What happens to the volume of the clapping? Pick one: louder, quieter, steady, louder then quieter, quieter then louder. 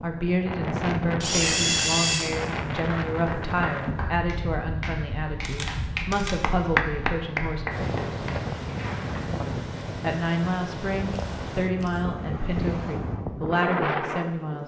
louder then quieter.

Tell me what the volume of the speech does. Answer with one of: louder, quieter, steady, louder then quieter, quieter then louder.
steady.